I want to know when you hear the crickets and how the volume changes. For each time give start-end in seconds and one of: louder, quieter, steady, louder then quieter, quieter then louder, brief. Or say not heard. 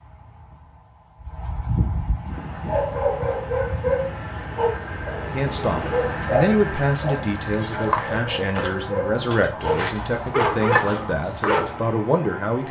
0.0-12.6 quieter then louder.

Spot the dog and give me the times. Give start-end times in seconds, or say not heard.
2.6-11.8.